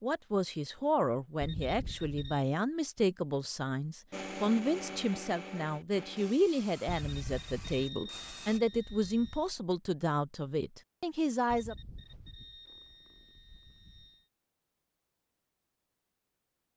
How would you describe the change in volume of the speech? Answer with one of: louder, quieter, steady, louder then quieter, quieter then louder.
steady.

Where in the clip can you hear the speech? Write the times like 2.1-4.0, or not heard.
0.0-11.8.